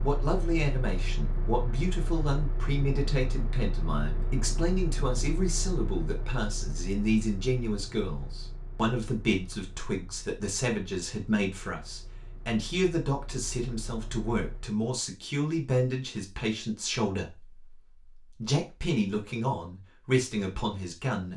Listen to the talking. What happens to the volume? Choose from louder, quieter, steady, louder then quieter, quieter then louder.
steady.